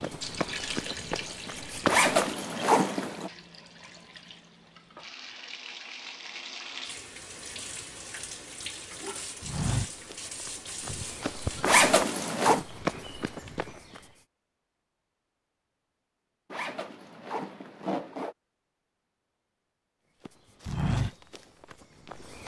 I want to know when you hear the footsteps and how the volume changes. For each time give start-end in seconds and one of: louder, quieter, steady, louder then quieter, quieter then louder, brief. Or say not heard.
0.0-2.3 brief
9.4-14.1 louder then quieter
20.2-22.4 brief.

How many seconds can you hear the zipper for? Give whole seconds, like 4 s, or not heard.
4 s.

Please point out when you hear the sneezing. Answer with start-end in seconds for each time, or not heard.
10.8-11.5.